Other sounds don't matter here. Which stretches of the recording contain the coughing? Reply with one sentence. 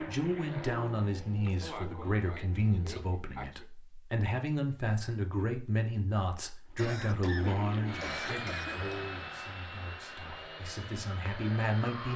You can hear the coughing from 1.4 to 3.6 s and from 6.8 to 9.0 s.